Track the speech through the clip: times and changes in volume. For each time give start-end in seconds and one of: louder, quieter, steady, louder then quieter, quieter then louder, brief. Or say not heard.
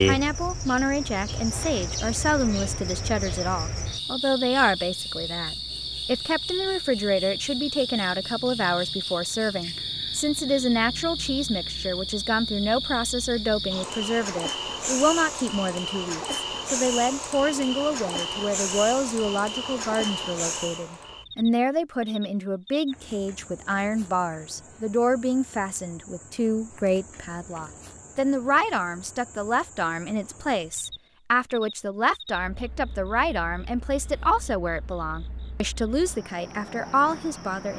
0.0-37.7 steady.